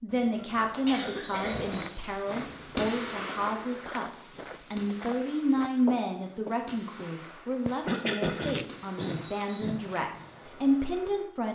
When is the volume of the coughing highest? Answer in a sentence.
The volume of the coughing peaks at 8 seconds.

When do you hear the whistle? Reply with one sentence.
The whistle can be heard from 1.2 to 2.0 s and from 9.0 to 9.7 s.